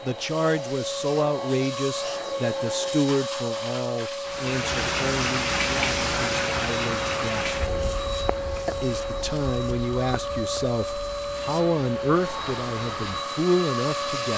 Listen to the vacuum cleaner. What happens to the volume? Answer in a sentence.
The volume of the vacuum cleaner stays about the same.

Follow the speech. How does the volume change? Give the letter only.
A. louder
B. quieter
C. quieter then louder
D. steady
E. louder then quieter
C.